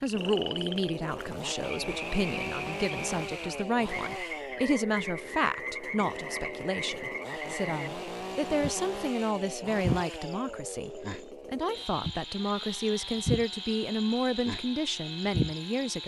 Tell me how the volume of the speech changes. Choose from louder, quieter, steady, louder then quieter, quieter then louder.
steady.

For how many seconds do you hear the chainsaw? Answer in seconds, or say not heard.
16 s.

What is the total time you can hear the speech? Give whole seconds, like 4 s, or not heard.
16 s.